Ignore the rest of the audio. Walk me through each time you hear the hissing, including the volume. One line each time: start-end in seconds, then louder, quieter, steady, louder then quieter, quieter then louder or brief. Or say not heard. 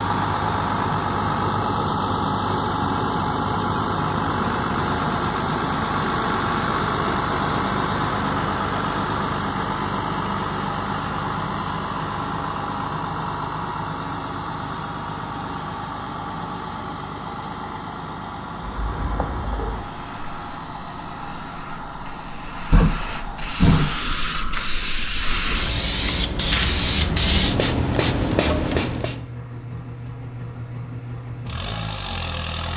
18.6-29.2 louder.